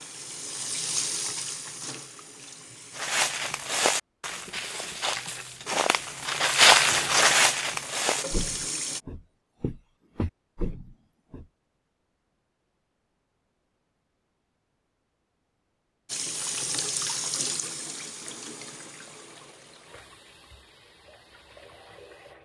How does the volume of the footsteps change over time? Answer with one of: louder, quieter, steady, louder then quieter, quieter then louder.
louder then quieter.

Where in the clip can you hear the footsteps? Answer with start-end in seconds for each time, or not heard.
3.0-11.4.